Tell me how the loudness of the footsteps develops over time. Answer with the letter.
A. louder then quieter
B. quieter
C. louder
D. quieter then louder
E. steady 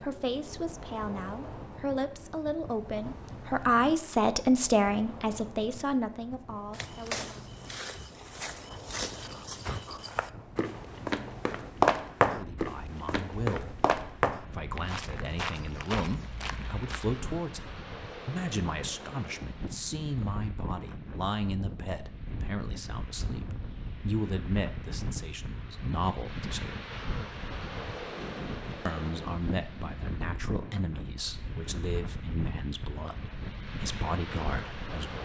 A.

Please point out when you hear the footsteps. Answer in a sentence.
You can hear the footsteps from 6.7 to 17.2 s.